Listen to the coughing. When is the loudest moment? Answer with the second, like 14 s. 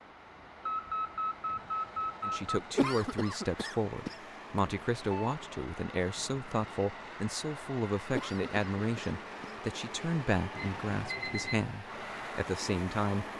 3 s.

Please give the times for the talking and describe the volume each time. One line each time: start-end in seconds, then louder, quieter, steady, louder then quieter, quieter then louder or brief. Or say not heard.
2.2-13.2 steady.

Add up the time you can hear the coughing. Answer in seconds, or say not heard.
3 s.